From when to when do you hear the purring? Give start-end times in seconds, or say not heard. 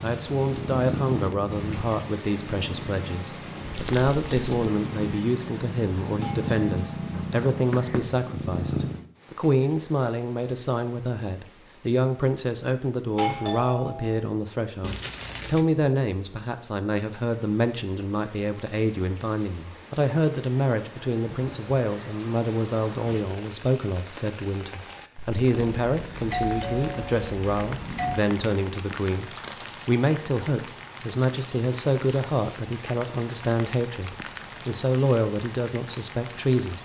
0.0-9.0.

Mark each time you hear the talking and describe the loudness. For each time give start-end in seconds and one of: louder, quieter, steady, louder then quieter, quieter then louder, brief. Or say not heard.
0.0-36.8 steady.